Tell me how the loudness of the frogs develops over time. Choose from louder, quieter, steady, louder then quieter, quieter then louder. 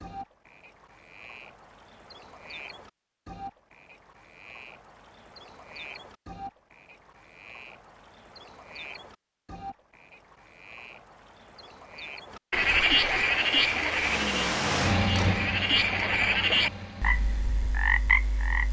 louder.